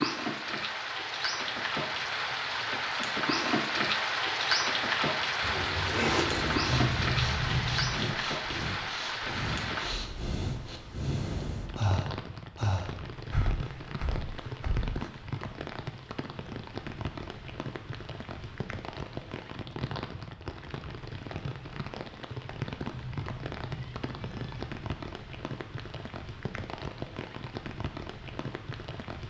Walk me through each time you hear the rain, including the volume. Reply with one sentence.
The rain can be heard from 0.0 to 29.2 s, getting quieter.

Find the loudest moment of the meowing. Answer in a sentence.
The loudest moment of the meowing is at 7 seconds.